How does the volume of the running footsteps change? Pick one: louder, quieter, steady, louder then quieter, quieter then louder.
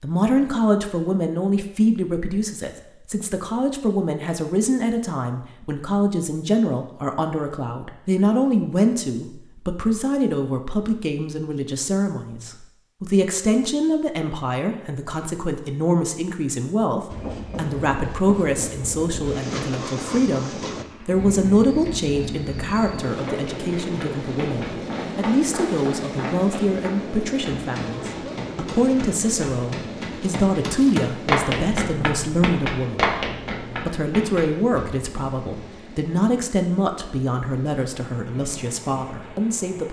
louder.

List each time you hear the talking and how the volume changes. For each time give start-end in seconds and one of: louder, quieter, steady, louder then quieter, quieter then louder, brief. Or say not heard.
0.0-39.8 steady.